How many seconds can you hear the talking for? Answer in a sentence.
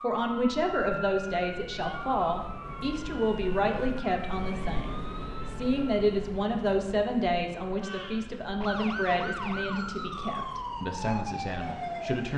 The talking can be heard for 12 seconds in total.